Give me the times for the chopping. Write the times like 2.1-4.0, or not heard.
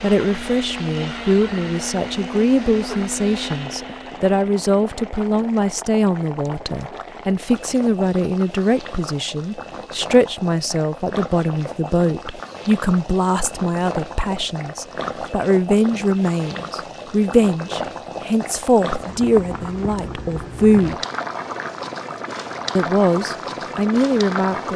not heard.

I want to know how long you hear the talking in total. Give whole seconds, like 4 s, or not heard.
23 s.